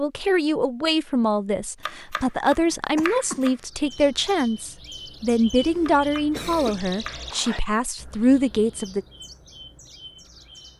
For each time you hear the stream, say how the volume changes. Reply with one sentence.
You can't hear the stream here.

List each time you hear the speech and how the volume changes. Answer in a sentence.
The speech can be heard from 0.0 to 9.1 s, at a steady volume.